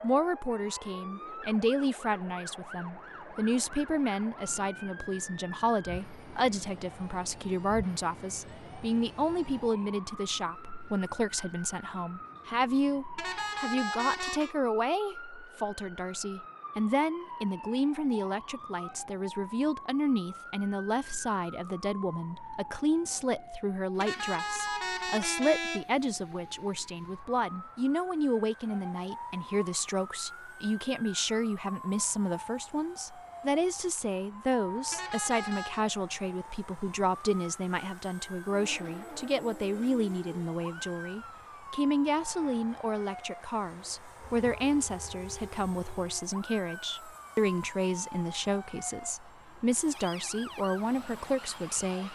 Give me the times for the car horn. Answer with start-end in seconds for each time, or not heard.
13.2-14.6, 24.0-25.9, 34.9-35.9.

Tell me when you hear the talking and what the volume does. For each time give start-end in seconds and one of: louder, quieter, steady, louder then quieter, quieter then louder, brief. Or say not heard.
0.0-52.0 steady.